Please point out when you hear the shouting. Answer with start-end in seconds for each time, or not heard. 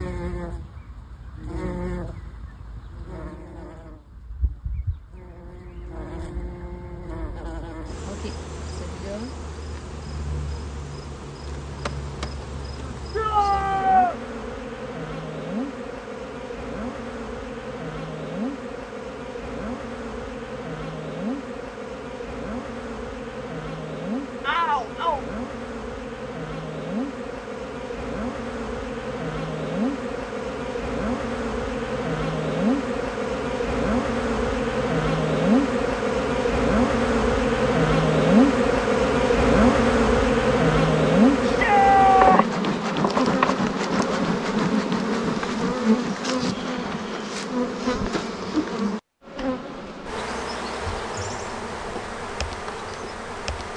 13.2-14.2, 24.4-25.2, 41.4-42.6.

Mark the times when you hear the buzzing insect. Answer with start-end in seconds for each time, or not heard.
0.0-53.7.